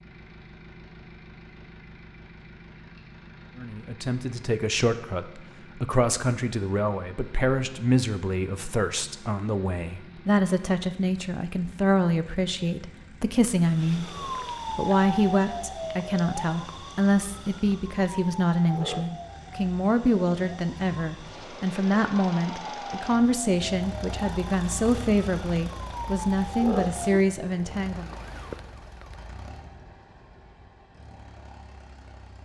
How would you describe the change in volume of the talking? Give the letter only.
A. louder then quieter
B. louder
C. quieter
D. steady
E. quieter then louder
D.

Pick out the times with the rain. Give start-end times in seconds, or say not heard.
not heard.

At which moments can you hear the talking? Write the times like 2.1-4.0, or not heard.
3.5-14.1, 14.8-28.1.